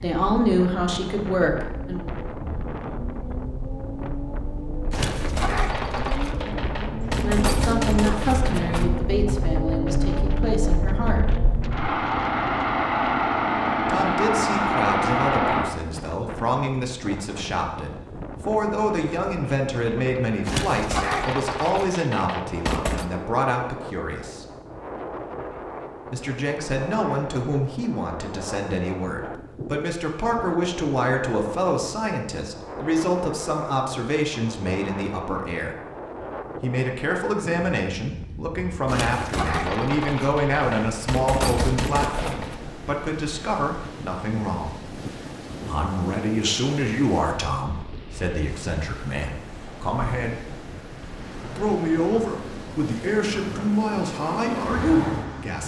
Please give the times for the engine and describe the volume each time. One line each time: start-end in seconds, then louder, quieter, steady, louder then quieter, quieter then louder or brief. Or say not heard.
0.0-15.7 louder
51.1-55.6 louder.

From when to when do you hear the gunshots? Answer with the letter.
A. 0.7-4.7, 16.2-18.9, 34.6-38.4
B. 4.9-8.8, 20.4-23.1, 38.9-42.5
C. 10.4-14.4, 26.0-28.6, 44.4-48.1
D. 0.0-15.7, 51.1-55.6
B.